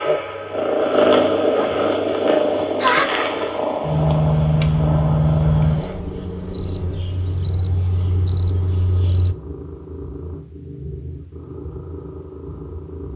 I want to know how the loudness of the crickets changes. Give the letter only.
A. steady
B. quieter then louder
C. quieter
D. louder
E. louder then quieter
D.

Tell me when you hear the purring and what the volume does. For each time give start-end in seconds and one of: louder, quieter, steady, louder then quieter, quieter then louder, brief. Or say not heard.
0.0-13.1 quieter.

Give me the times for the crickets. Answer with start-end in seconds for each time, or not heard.
0.0-9.3.